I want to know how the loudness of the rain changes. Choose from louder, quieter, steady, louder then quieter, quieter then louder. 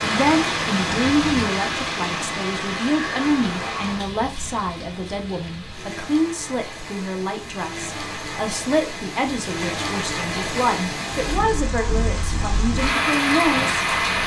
quieter then louder.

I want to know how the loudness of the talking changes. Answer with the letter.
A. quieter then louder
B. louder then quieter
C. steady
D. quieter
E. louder
C.